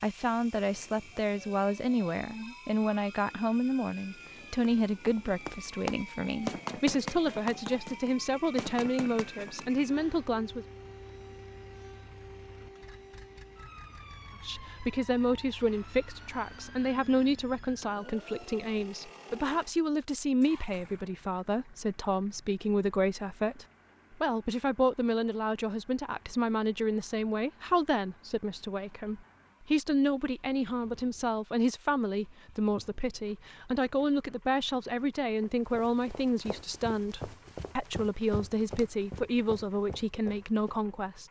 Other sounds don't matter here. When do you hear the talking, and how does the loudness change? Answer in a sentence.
You can hear the talking from 0.0 to 10.7 s, at a steady volume; and from 14.4 to 41.2 s, at a steady volume.